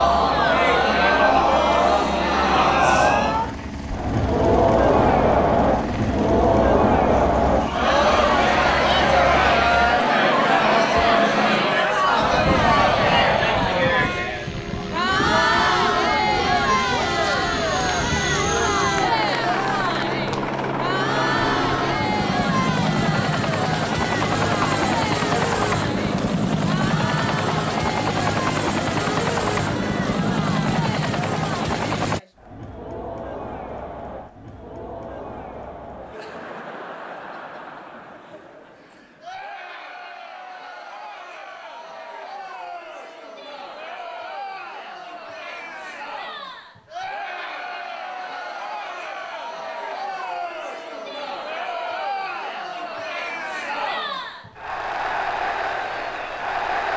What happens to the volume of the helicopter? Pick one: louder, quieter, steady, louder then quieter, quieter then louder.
louder.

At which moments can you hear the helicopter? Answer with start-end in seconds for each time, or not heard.
0.0-32.2.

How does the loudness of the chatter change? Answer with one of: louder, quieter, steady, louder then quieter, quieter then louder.
quieter then louder.